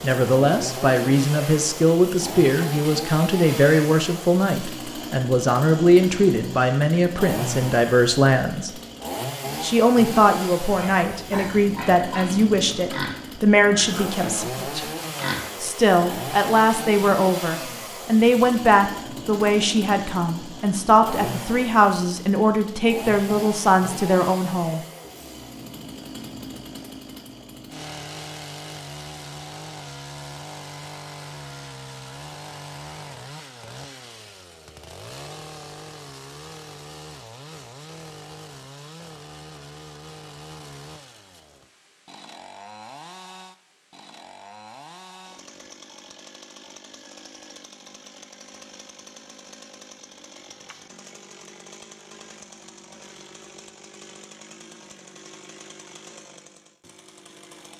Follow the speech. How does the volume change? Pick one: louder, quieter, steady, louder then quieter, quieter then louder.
steady.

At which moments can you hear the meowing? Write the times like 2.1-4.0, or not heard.
not heard.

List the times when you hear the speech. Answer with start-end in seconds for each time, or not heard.
0.0-8.7, 9.6-14.8, 15.6-24.8.